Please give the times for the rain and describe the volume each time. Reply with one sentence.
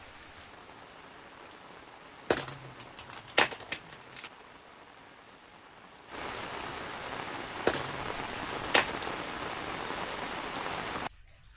You can hear the rain from 0.0 to 11.5 s, getting louder.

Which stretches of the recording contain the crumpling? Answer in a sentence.
You can hear the crumpling from 2.3 to 4.3 s and from 7.7 to 8.9 s.